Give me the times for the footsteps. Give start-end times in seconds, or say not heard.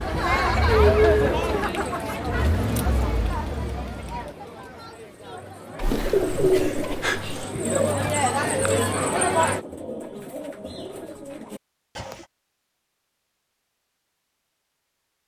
not heard.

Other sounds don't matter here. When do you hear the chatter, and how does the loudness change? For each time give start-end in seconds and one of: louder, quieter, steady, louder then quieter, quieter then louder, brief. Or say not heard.
0.0-9.6 quieter then louder.